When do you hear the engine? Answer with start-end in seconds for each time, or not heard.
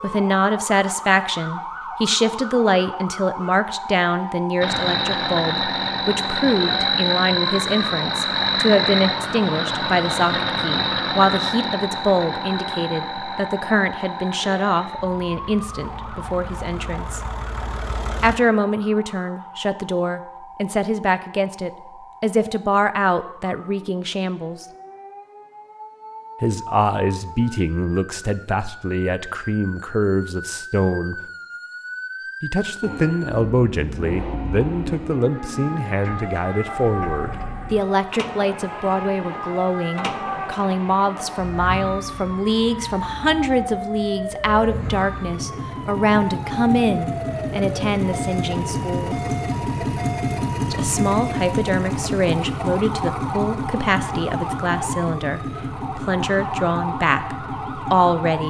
4.6-18.4, 32.8-58.4.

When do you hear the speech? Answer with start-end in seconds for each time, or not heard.
0.0-17.2, 18.2-24.6, 26.4-31.1, 32.4-49.1, 50.7-58.4.